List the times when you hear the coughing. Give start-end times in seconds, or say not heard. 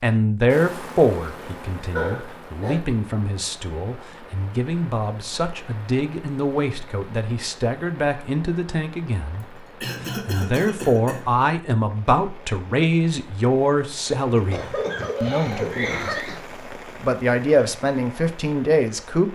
1.9-2.8, 9.4-11.2, 14.3-16.4.